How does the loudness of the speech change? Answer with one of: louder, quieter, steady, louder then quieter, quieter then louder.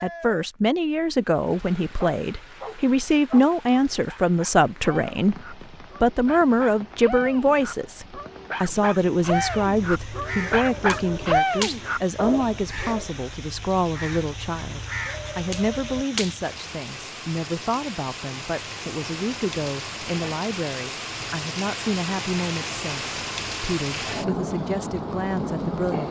quieter.